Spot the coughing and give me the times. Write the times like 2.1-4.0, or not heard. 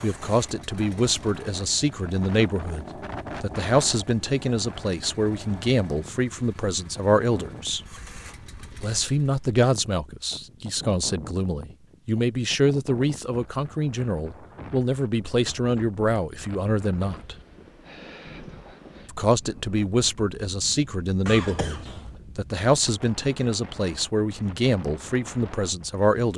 21.2-22.2.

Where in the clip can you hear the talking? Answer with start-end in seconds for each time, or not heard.
0.0-7.8, 8.8-17.4, 19.1-26.3.